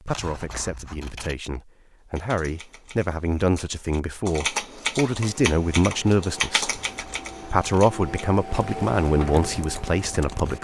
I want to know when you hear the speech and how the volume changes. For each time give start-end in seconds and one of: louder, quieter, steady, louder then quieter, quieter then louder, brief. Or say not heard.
0.0-10.6 louder.